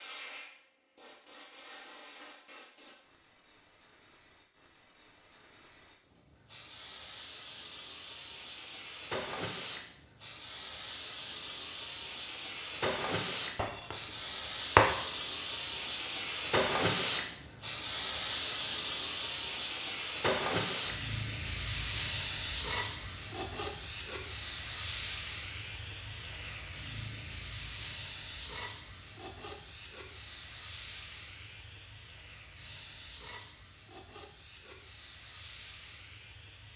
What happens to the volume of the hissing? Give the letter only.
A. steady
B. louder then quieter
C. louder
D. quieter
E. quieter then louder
B.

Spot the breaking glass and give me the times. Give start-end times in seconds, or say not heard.
13.6-14.9.